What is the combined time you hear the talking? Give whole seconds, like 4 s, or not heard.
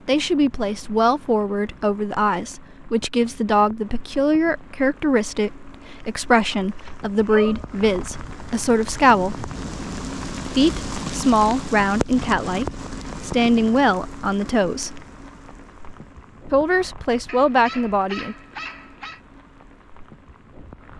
16 s.